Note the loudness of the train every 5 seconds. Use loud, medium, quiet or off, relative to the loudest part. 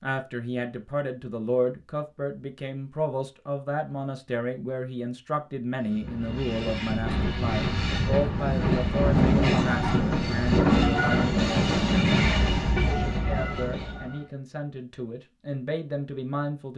off, loud, loud, off.